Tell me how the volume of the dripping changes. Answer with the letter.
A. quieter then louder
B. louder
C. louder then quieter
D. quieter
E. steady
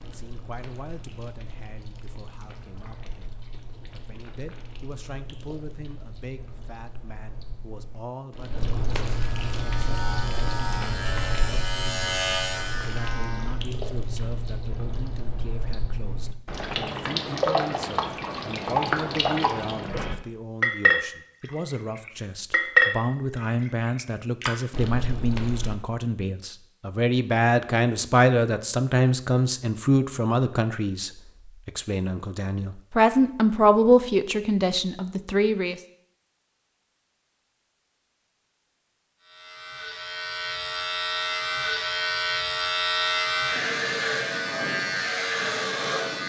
B.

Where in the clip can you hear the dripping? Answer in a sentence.
You can hear the dripping from 0.0 to 25.8 s.